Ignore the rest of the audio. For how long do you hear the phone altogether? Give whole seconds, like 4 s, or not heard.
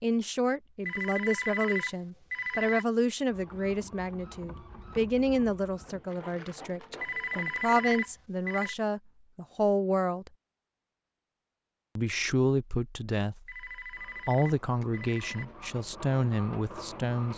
6 s.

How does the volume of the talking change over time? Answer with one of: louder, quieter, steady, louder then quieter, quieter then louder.
steady.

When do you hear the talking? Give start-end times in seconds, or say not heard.
0.0-10.3, 11.9-17.3.